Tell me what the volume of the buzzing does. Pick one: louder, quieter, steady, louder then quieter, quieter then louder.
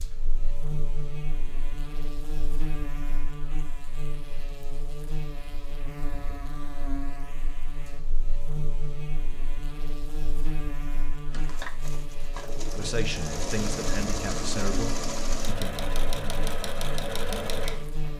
steady.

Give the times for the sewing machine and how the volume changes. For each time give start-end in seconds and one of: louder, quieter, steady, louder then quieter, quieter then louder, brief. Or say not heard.
11.3-18.1 louder.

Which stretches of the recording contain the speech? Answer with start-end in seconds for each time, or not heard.
12.8-15.7.